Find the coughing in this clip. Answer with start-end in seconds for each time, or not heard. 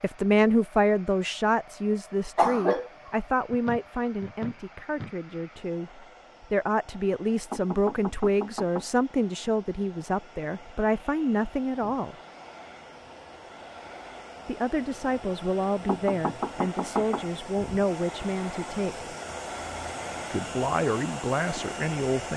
2.4-2.9.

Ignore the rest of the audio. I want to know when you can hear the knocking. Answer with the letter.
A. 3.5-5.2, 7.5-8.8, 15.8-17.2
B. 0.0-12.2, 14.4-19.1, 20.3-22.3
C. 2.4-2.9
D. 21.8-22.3
A.